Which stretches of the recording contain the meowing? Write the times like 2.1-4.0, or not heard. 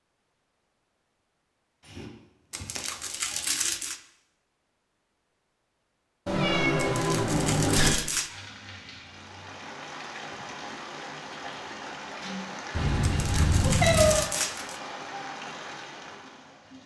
1.9-2.8, 6.2-7.9, 12.7-14.2.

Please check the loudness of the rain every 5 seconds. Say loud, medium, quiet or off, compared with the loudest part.
off, medium, loud, loud.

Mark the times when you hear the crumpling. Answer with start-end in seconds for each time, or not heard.
2.5-4.0, 6.8-8.3, 13.0-14.8.